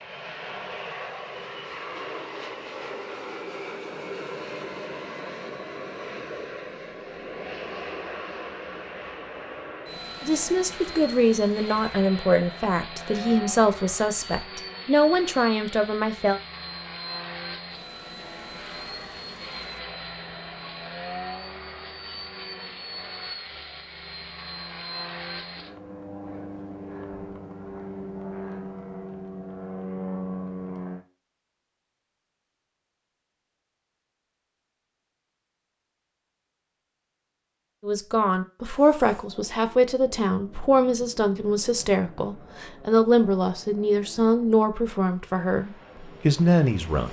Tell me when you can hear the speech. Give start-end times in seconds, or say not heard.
10.2-16.4, 37.8-47.0.